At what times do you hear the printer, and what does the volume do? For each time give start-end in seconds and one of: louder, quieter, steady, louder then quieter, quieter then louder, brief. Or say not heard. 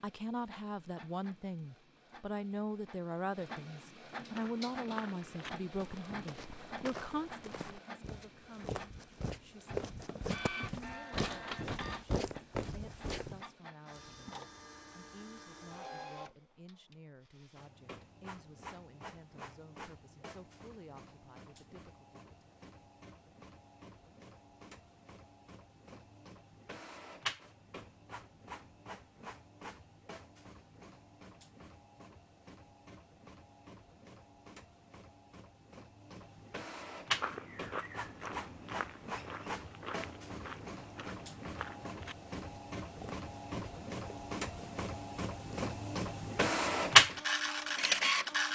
0.0-48.4 louder.